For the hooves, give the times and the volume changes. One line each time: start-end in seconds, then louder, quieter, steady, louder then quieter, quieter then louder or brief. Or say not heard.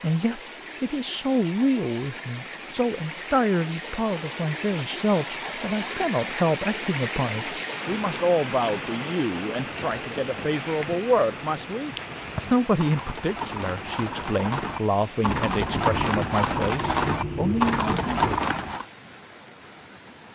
9.5-18.9 louder.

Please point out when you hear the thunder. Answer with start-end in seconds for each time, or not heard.
15.2-18.2.